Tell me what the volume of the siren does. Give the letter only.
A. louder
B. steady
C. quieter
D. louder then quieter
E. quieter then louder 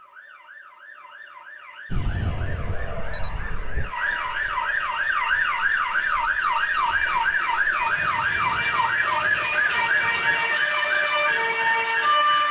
A.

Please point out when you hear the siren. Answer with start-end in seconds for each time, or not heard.
0.0-12.4.